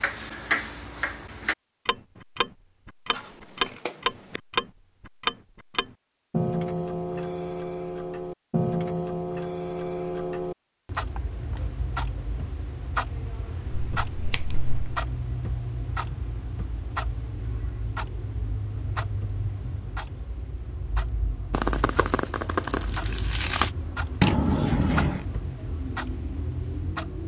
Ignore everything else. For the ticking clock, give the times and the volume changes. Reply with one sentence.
You can hear the ticking clock from 0.0 to 27.2 s, getting quieter.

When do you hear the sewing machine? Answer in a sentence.
You can't hear the sewing machine here.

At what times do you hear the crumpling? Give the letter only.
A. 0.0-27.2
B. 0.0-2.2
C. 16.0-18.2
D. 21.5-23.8
D.